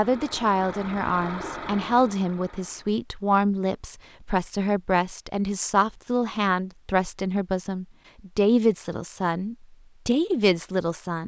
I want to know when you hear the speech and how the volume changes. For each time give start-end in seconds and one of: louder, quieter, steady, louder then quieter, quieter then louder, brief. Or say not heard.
0.0-11.2 steady.